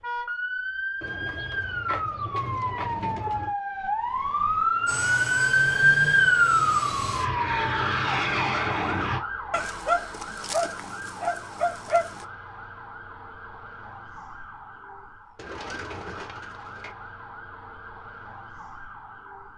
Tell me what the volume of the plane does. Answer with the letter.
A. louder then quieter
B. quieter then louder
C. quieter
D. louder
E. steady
D.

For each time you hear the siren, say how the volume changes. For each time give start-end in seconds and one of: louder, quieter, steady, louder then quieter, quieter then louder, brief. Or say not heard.
0.0-19.5 louder then quieter.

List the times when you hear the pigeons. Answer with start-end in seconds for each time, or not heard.
1.0-3.5, 15.3-16.9.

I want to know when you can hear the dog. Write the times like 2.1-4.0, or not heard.
9.5-12.2.